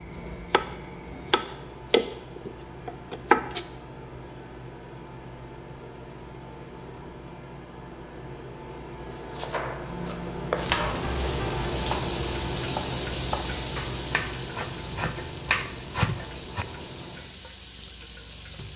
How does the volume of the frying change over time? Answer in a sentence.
The loudness of the frying goes down.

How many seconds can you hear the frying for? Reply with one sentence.
The frying can be heard for 8 seconds in total.